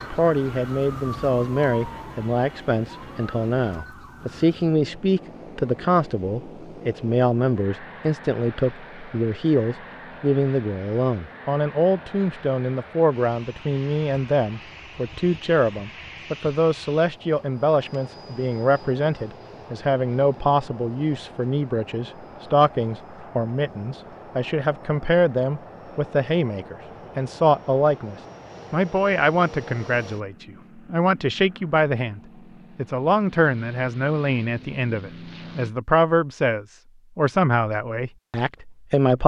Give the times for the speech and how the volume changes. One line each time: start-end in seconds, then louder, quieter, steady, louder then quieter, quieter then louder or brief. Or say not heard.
0.1-39.2 steady.